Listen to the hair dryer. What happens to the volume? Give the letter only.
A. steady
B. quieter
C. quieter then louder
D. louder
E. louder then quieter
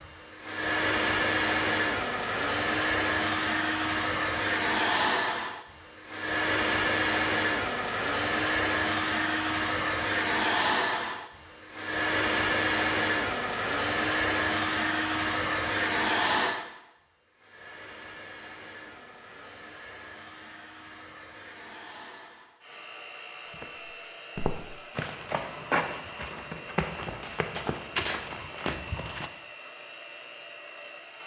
B.